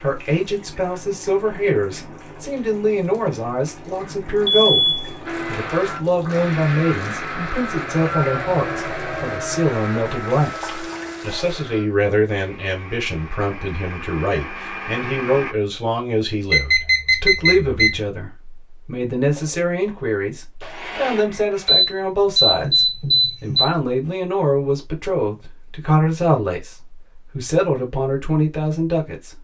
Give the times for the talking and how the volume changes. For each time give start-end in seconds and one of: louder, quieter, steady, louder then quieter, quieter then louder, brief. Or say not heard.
0.0-29.3 steady.